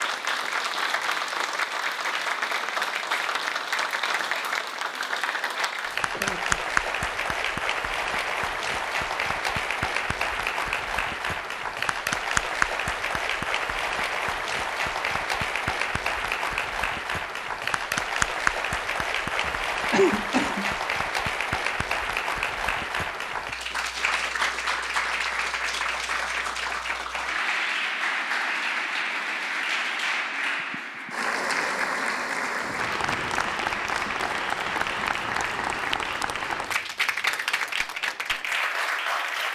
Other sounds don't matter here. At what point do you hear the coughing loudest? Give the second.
20 s.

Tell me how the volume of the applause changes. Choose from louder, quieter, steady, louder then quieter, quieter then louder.
steady.